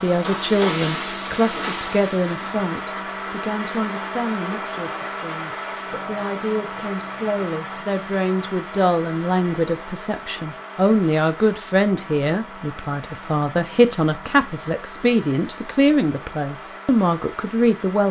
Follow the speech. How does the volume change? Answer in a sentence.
The volume of the speech goes down, then up.